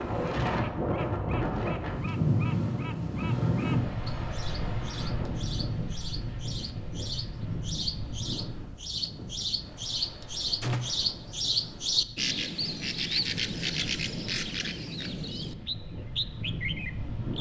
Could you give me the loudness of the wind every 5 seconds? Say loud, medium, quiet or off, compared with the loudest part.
loud, medium, quiet, medium.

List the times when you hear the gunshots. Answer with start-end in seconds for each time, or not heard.
10.6-11.1.